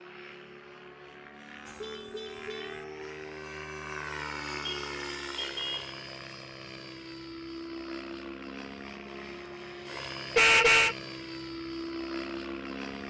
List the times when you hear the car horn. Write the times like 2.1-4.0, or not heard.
1.6-2.9, 4.6-6.0, 10.3-10.9.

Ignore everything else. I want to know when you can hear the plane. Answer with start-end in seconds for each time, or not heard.
0.0-13.0.